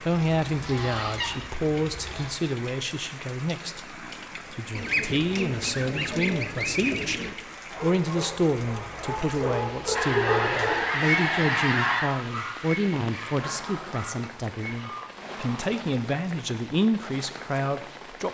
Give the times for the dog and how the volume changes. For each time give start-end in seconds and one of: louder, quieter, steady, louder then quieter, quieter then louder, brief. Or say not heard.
7.7-14.8 louder then quieter.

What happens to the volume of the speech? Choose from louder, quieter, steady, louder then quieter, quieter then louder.
steady.